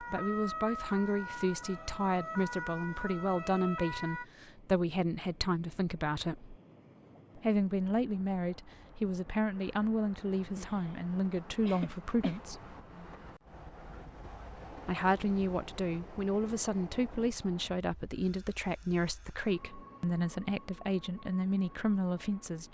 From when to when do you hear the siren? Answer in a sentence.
You can hear the siren from 0.0 to 4.2 s.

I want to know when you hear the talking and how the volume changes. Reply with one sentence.
The talking can be heard from 0.0 to 6.5 s, at a steady volume; from 7.3 to 12.6 s, at a steady volume; and from 14.8 to 22.6 s, at a steady volume.